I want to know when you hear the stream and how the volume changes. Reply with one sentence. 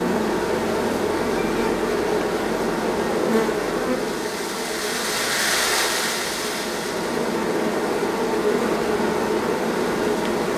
The stream can be heard from 0.1 to 10.5 s, getting louder then quieter.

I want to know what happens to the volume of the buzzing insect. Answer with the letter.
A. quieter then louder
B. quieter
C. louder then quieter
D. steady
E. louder
A.